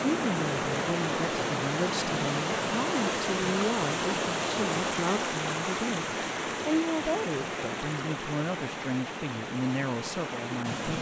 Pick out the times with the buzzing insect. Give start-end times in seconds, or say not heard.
not heard.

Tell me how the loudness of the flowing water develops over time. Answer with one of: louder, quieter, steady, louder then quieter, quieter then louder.
quieter.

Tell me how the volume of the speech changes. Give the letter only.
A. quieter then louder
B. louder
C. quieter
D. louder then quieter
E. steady
E.